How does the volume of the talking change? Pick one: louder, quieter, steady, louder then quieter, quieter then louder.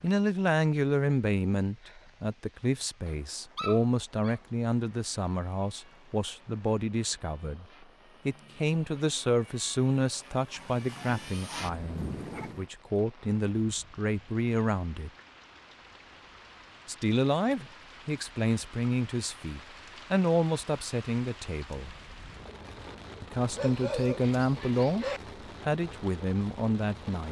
steady.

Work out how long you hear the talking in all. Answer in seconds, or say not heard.
24 s.